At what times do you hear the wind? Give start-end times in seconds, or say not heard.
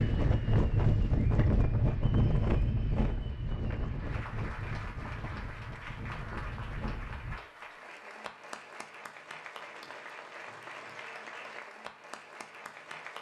0.0-7.4.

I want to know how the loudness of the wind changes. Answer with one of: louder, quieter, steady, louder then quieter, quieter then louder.
quieter.